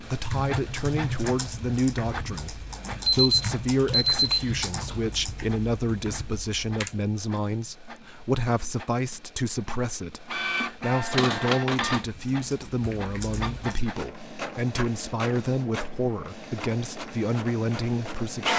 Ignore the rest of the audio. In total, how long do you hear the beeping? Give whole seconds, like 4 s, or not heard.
2 s.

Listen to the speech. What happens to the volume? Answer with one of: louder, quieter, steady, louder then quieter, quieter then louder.
steady.